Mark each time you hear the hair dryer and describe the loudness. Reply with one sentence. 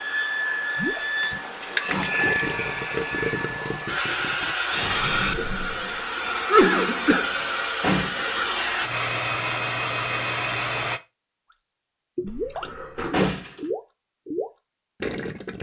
You can hear the hair dryer from 0.0 to 11.0 s, at a steady volume.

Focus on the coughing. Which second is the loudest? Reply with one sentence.
The loudest moment of the coughing is at 7 seconds.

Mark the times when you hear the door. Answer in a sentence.
The door can be heard from 1.9 to 2.4 s, from 7.8 to 8.3 s and from 13.1 to 13.6 s.